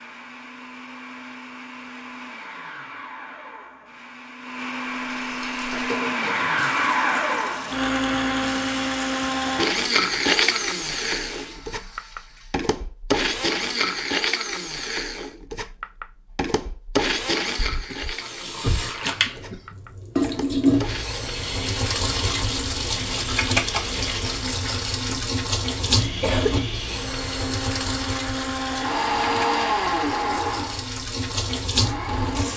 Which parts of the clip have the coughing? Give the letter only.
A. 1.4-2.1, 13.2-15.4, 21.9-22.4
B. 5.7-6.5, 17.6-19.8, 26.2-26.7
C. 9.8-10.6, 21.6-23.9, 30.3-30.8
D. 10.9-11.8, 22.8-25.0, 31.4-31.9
B.